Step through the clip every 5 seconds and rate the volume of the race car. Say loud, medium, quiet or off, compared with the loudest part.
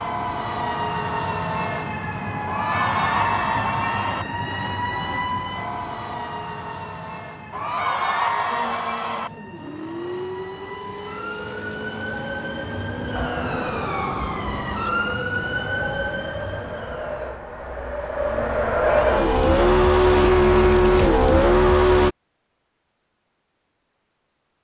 off, quiet, quiet, medium, loud.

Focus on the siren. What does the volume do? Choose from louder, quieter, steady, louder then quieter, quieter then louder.
quieter then louder.